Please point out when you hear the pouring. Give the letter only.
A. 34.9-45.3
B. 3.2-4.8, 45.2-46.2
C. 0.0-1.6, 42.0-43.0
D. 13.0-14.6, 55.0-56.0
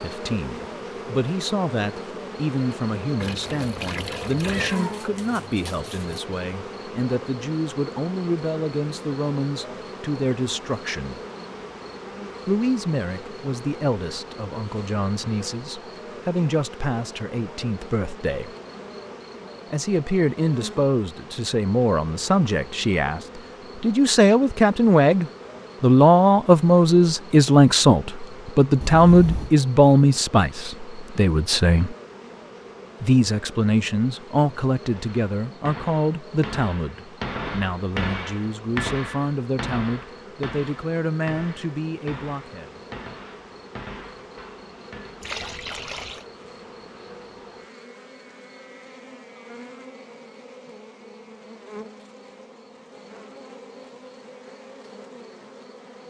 B.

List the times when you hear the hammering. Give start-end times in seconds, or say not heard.
34.9-45.3.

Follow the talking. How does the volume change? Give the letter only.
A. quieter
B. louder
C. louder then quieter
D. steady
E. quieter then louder
C.